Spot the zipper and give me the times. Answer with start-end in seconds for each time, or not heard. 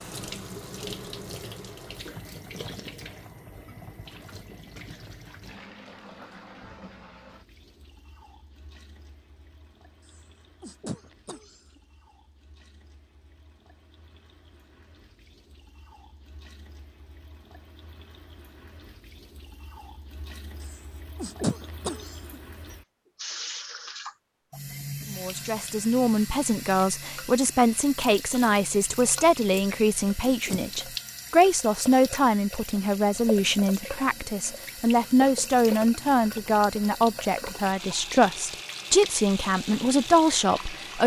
not heard.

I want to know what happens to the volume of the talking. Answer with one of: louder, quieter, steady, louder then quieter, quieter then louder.
steady.